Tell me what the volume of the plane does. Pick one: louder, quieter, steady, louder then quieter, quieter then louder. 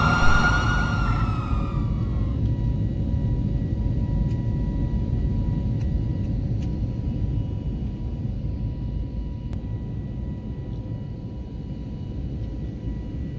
quieter.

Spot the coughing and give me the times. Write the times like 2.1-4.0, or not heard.
not heard.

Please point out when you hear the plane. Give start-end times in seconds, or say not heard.
0.0-13.3.